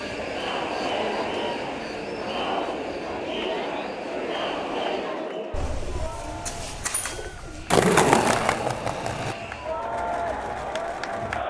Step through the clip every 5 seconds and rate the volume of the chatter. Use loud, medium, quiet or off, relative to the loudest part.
loud, medium, loud.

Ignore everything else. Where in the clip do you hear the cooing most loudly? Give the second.
7 s.